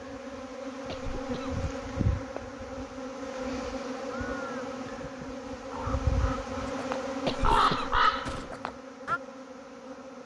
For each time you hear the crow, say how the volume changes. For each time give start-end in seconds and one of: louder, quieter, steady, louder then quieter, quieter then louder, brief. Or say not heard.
4.0-9.2 louder.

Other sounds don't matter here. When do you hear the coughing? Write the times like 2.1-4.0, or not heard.
0.8-1.6, 7.2-8.6.